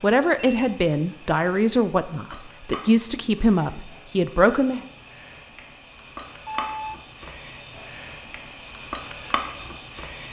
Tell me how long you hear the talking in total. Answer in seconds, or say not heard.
5 s.